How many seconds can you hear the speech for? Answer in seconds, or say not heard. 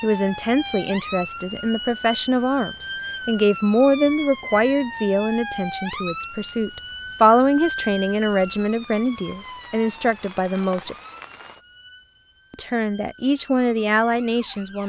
13 s.